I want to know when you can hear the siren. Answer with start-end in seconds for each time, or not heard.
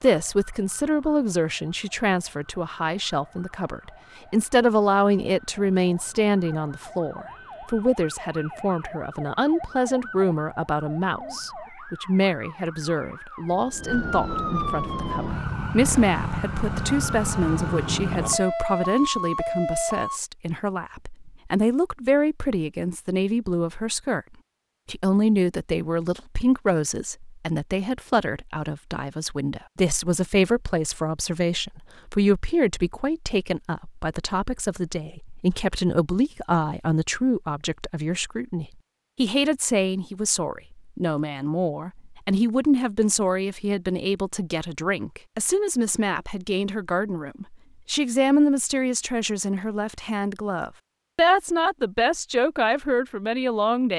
0.0-20.2.